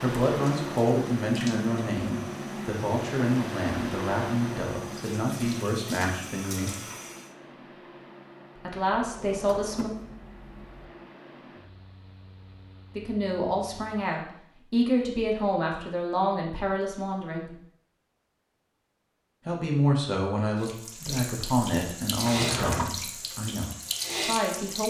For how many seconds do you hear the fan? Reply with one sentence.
The fan can be heard for 14 seconds in total.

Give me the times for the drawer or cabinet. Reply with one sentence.
The drawer or cabinet can be heard from 8.9 to 10.7 s and from 22.2 to 23.0 s.